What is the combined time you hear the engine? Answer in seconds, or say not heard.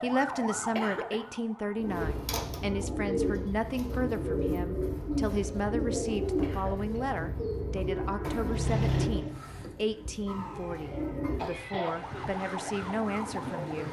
2 s.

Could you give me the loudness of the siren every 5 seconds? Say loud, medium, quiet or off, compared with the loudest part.
loud, off, loud.